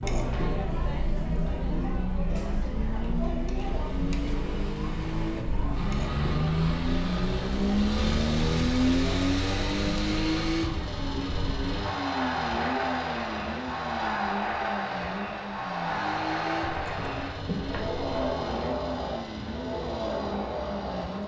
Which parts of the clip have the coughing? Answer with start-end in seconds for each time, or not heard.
not heard.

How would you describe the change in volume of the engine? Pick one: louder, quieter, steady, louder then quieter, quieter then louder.
louder then quieter.